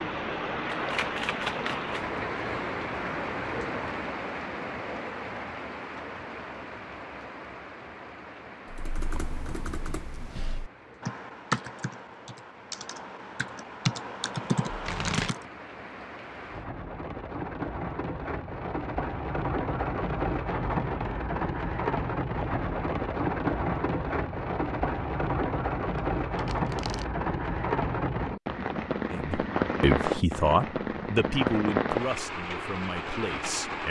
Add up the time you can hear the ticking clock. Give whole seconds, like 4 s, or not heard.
not heard.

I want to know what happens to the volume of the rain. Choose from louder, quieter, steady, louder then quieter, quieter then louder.
quieter then louder.